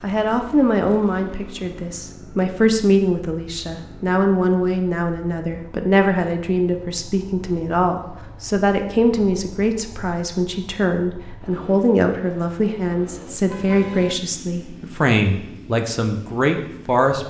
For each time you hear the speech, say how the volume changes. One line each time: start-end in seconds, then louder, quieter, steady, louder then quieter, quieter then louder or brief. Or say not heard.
0.0-17.2 steady.